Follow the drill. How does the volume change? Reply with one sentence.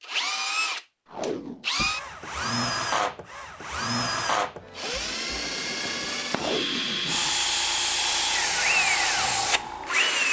The volume of the drill stays about the same.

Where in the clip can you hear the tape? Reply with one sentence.
You can hear the tape from 1.1 to 1.6 s and from 6.3 to 7.8 s.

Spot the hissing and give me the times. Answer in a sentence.
You can hear the hissing from 7.0 to 10.2 s.